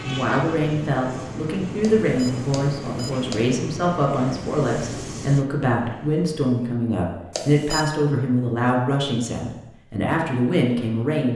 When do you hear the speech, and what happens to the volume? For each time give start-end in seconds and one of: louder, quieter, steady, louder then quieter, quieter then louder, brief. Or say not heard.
0.0-11.3 steady.